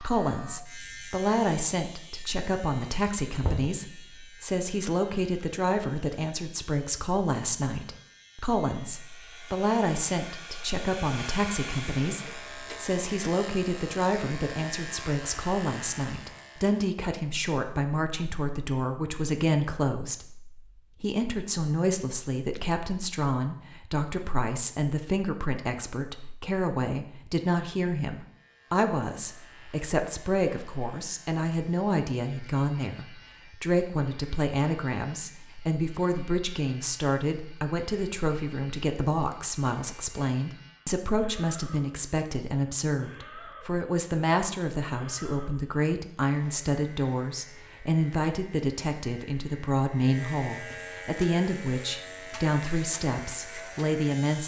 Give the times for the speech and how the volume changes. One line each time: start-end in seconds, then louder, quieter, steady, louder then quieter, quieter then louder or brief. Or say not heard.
0.0-54.4 steady.